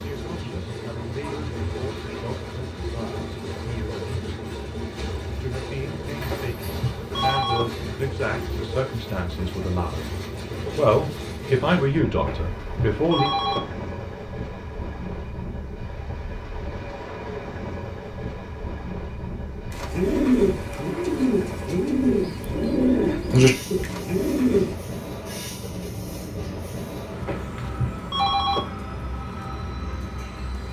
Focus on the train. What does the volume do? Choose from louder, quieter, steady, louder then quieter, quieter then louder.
steady.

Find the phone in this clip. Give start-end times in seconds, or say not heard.
6.3-7.7, 12.2-13.6, 27.2-28.6.